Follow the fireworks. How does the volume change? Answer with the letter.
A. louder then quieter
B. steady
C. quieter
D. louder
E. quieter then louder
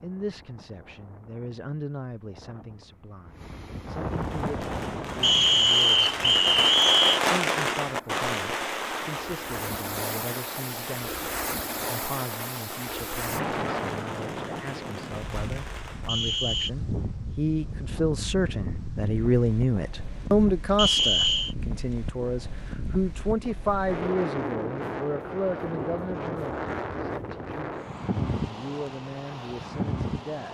A.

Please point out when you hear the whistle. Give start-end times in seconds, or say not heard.
5.2-7.2, 16.1-16.7, 20.8-21.6.